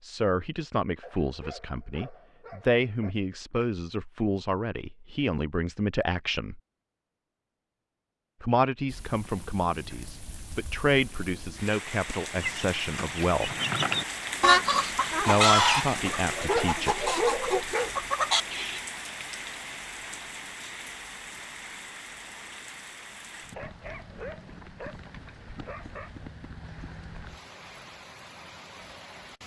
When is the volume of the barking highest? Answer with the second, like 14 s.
17 s.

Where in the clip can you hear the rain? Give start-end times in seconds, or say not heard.
8.8-29.4.